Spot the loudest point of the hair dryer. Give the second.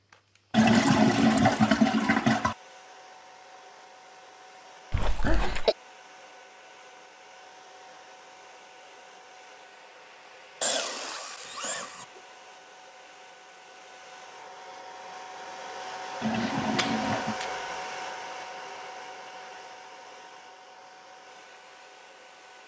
17 s.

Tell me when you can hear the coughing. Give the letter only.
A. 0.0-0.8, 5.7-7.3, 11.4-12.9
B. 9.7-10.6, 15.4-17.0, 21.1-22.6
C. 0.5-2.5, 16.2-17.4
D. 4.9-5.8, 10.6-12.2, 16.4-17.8
D.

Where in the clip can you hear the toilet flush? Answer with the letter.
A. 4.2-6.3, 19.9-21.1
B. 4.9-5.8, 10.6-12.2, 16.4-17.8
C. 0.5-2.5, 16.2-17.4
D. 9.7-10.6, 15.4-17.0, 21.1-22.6
C.